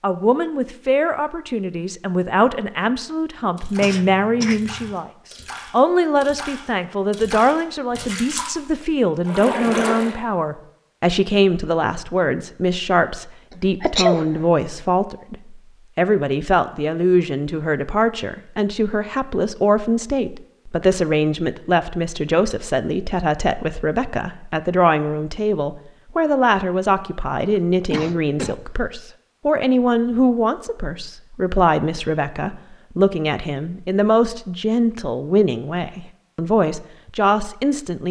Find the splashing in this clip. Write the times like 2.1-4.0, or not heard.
3.5-10.2.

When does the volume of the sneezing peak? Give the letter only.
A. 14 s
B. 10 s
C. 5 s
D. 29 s
A.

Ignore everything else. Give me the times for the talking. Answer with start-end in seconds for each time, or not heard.
0.0-5.1, 5.7-38.0.